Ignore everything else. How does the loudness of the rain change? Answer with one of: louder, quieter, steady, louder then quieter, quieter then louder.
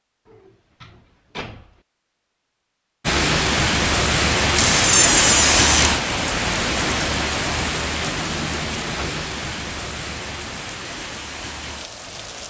quieter.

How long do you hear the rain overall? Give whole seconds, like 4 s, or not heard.
9 s.